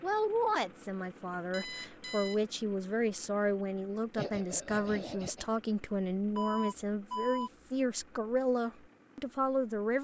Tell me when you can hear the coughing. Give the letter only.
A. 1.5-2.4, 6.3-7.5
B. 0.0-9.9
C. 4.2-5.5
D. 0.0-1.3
C.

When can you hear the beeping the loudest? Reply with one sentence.
The loudest moment of the beeping is at 7 seconds.